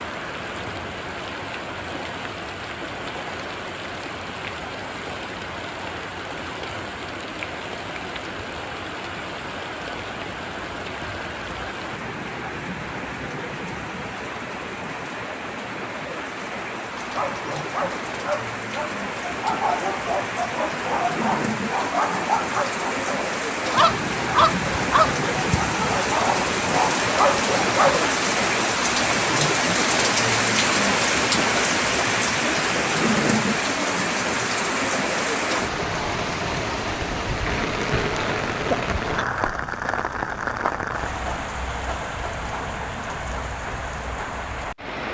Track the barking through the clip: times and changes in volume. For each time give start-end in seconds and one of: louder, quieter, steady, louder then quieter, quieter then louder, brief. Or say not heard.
16.9-28.2 louder.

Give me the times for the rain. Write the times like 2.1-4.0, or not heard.
0.0-45.0.